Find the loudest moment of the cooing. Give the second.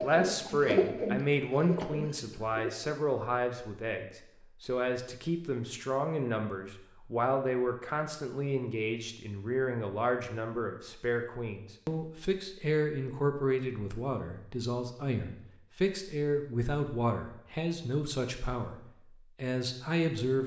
1 s.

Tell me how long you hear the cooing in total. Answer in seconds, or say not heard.
3 s.